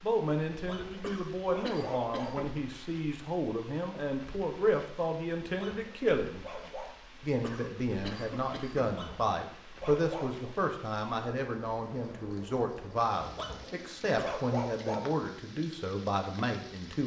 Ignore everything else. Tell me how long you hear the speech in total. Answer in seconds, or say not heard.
16 s.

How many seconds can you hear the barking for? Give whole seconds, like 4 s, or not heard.
7 s.